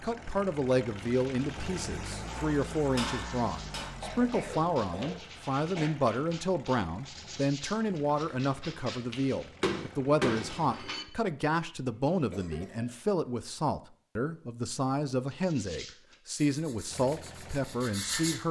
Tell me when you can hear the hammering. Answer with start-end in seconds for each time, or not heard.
2.2-4.0, 9.6-11.1.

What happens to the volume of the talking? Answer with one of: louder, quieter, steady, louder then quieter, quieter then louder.
steady.